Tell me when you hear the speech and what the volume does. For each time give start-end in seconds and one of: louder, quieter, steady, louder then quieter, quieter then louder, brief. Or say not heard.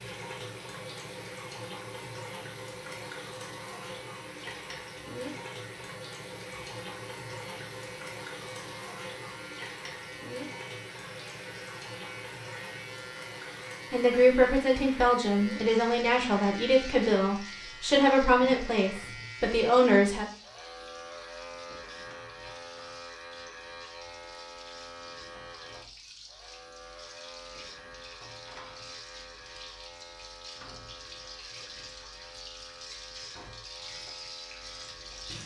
13.9-20.2 steady.